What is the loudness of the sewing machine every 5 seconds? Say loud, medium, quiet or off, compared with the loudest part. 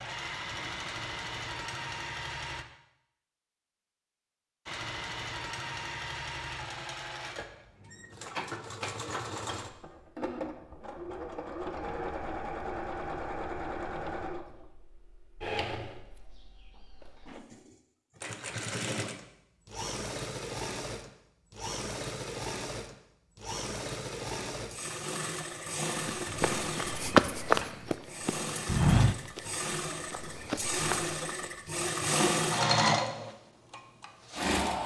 medium, medium, medium, medium, medium, medium, loud.